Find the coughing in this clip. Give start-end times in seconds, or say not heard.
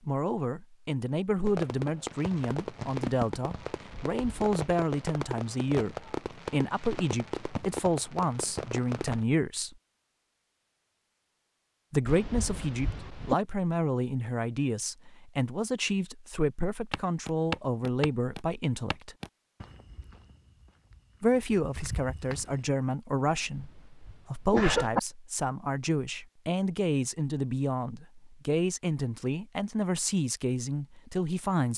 3.9-4.5, 12.1-13.3, 23.6-25.0.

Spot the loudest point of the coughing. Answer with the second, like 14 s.
25 s.